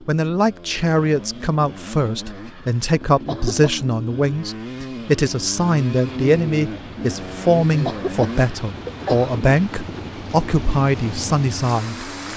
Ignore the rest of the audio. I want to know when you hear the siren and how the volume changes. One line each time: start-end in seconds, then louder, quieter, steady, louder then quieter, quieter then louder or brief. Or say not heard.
not heard.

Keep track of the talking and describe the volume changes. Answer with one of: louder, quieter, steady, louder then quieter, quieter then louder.
steady.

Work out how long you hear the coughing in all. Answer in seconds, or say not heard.
2 s.